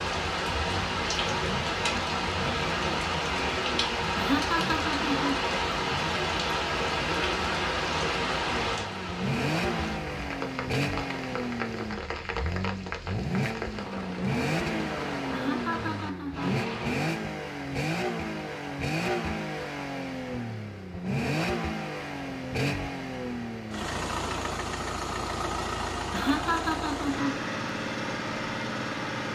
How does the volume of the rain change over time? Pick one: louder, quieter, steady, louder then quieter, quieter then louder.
quieter.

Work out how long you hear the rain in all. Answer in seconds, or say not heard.
17 s.